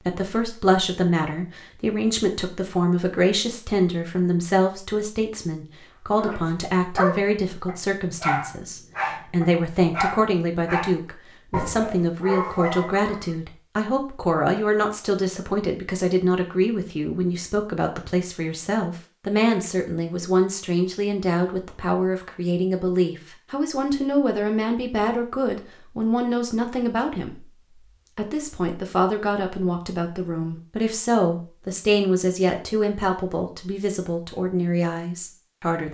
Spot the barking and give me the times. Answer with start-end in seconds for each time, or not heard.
6.1-13.2.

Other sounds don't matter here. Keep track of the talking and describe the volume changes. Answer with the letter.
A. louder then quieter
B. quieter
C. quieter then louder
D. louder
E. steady
E.